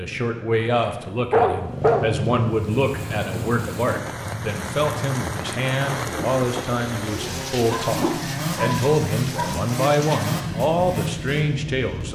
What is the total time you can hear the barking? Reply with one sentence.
You can hear the barking for 3 seconds altogether.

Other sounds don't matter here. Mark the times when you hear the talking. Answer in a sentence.
You can hear the talking from 0.0 to 12.0 s.